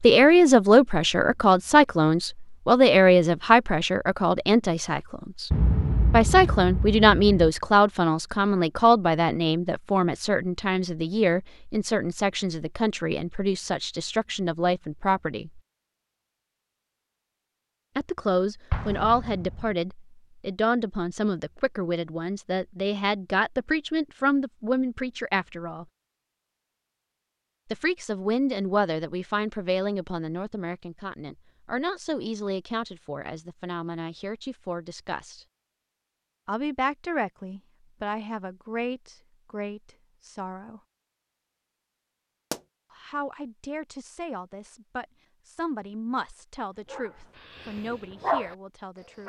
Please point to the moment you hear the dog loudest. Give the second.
48 s.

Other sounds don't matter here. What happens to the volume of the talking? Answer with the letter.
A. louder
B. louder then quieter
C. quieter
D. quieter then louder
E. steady
C.